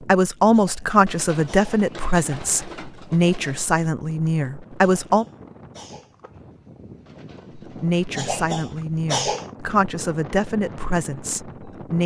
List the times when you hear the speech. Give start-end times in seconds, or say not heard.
0.0-5.2, 7.8-12.0.